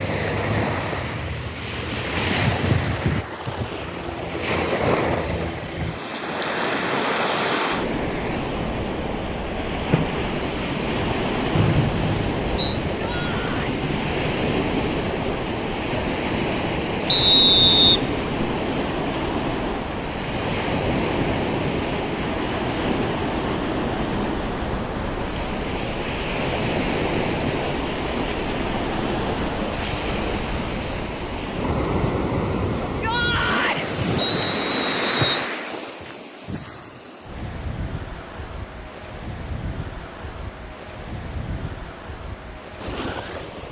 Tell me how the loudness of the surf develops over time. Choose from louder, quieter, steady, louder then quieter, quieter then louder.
quieter.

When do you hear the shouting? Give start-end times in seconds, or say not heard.
12.9-13.8, 32.9-33.9.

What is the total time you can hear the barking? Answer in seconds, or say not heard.
not heard.